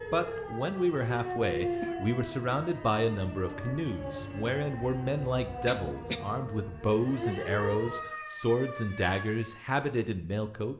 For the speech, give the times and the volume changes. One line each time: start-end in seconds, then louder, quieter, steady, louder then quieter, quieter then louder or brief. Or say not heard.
0.1-10.7 steady.